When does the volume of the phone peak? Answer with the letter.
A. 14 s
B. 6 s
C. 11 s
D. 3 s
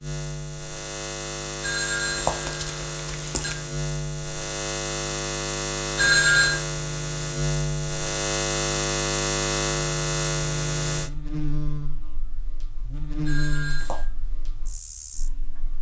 B.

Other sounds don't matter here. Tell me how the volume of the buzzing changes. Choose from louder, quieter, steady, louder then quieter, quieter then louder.
louder then quieter.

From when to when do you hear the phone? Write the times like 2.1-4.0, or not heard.
1.6-3.5, 6.0-6.6, 13.2-14.0.